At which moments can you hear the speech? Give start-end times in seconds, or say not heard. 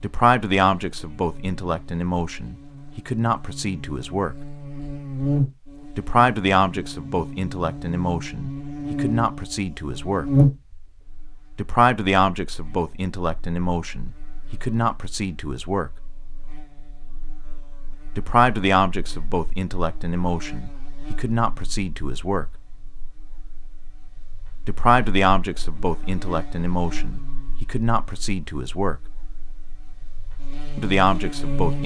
0.0-4.3, 6.0-10.3, 11.6-15.9, 18.1-22.4, 24.6-29.0, 30.8-31.8.